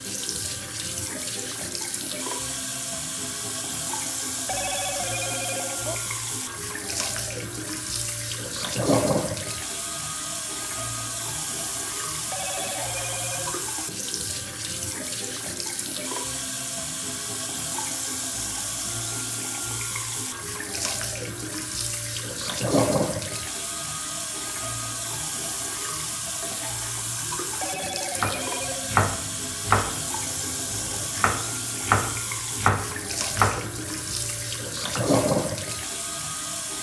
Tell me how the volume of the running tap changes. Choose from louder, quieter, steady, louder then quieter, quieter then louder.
steady.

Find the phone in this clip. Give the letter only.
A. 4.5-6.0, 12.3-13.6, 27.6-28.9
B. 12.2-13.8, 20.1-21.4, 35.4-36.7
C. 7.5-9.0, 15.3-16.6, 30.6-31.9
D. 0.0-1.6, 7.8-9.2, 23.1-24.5
A.